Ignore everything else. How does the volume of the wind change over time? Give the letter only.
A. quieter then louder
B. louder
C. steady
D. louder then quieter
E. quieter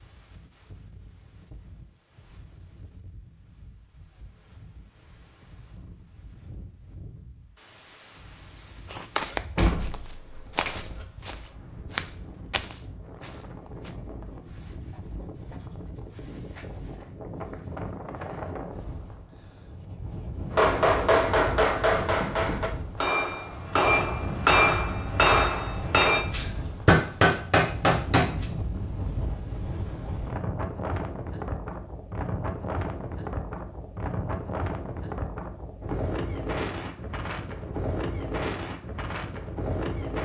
B.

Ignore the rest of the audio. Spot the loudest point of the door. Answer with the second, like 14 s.
10 s.